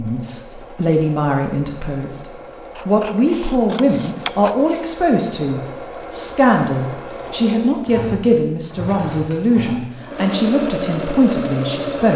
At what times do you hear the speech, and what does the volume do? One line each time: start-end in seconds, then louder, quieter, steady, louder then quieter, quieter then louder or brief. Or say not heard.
0.0-12.1 steady.